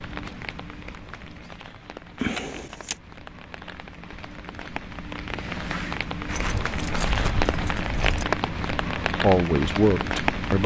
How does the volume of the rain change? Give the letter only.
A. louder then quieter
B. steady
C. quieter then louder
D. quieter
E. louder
E.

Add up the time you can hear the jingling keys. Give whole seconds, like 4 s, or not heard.
3 s.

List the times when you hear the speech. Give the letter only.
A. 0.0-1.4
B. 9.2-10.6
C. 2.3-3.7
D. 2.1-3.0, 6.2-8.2
B.